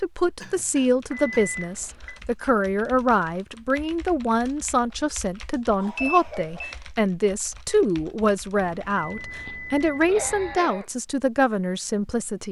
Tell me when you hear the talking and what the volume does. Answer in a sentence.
You can hear the talking from 0.0 to 12.4 s, at a steady volume.